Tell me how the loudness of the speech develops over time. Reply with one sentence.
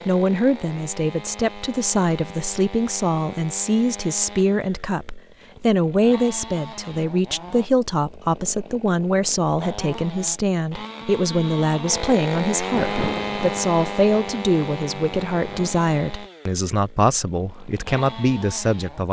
The volume of the speech stays about the same.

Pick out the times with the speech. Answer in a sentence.
The speech can be heard from 0.1 to 19.0 s.